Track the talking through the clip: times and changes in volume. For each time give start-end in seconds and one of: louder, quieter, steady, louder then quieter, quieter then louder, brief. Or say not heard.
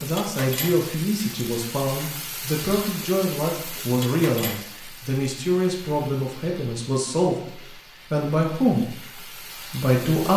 0.0-10.3 steady.